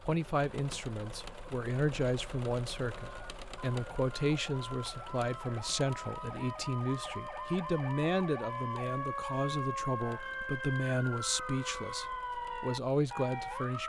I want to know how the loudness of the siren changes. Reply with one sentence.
The volume of the siren goes up.